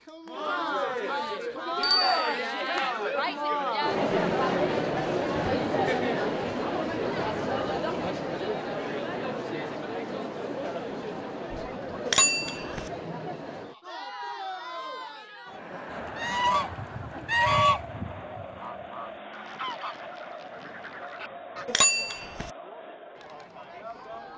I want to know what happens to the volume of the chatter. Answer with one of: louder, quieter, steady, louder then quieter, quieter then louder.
quieter.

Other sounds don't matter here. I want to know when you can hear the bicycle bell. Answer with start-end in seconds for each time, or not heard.
1.8-2.3, 12.1-12.9, 21.6-22.5.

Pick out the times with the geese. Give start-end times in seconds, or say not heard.
15.9-21.6.